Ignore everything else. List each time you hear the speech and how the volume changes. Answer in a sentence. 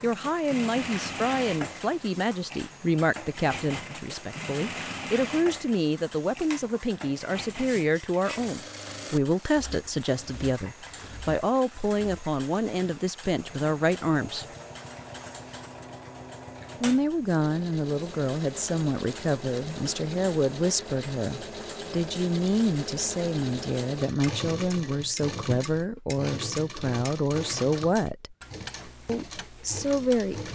The speech can be heard from 0.0 to 14.4 s, at a steady volume; from 16.8 to 28.4 s, at a steady volume; and briefly from 29.1 to 30.4 s.